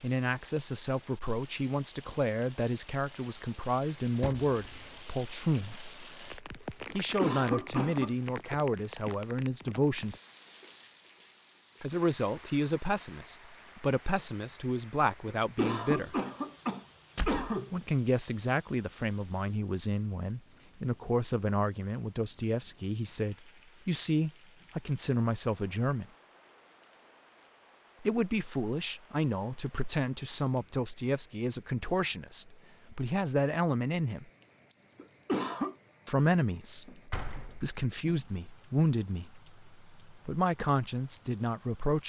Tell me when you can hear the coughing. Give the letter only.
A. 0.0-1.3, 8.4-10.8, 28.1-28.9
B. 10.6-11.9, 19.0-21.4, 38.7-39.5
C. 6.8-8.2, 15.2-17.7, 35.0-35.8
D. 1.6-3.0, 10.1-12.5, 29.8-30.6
C.